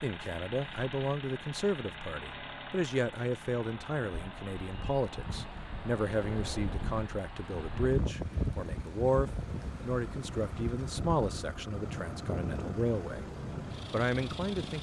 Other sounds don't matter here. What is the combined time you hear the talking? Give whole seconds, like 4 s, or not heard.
14 s.